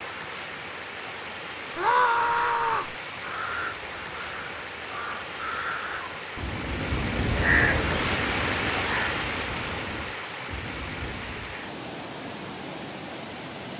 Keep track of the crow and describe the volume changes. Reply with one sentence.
The loudness of the crow goes up, then down.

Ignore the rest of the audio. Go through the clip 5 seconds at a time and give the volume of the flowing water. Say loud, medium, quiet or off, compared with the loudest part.
medium, loud, medium.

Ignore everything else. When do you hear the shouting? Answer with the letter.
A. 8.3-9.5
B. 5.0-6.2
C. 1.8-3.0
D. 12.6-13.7
C.